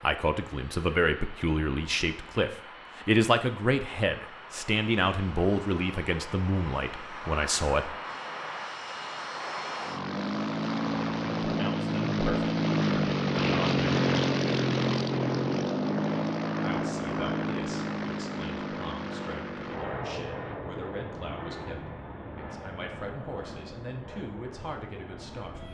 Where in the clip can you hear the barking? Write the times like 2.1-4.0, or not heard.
not heard.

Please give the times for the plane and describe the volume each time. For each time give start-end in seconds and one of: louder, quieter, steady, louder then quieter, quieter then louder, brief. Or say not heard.
0.0-25.6 louder then quieter.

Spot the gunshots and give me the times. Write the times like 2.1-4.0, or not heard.
not heard.